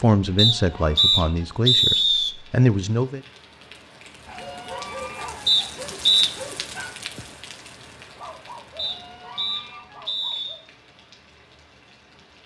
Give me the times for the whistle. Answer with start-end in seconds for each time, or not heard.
0.3-2.3, 5.5-6.3, 8.8-10.6.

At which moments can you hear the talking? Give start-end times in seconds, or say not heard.
0.0-3.2.